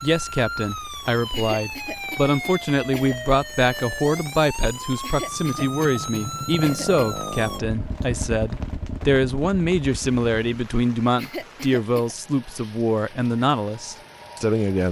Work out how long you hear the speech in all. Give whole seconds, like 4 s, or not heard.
15 s.